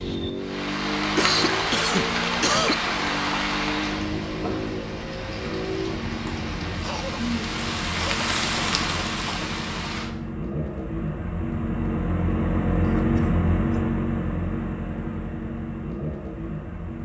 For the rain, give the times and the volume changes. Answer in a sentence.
The rain can be heard from 0.0 to 10.2 s, getting quieter then louder.